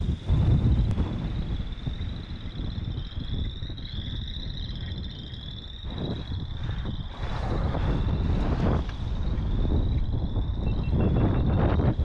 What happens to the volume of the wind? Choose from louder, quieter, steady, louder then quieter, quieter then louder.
quieter then louder.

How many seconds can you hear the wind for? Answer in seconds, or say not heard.
12 s.